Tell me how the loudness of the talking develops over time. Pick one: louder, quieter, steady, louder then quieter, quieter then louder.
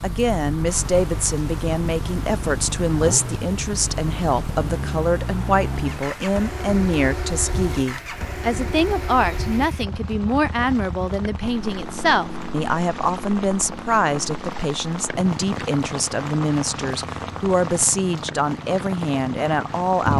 steady.